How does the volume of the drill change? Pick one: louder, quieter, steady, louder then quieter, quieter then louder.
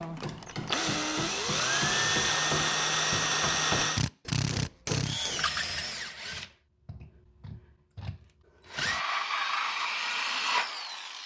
quieter then louder.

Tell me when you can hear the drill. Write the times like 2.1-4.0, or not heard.
0.0-11.2.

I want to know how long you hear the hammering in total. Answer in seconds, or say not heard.
6 s.